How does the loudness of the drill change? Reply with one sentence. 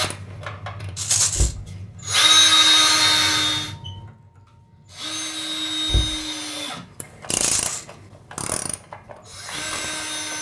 The volume of the drill goes up, then down.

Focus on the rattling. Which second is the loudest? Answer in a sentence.
The loudest moment of the rattling is at 1 second.